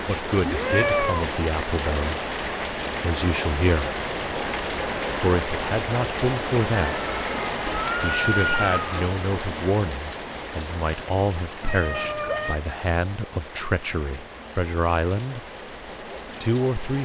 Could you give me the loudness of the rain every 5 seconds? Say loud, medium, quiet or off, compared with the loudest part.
loud, loud, medium, medium.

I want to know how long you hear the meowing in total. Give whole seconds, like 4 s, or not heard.
4 s.